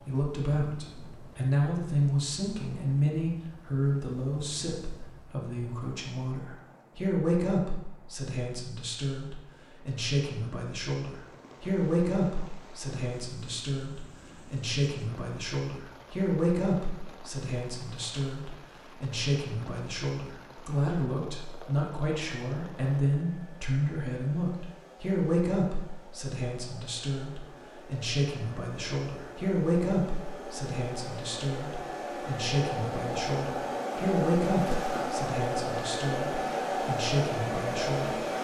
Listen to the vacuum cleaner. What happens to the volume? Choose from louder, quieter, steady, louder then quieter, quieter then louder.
louder.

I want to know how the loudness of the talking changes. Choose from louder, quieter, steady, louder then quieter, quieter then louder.
steady.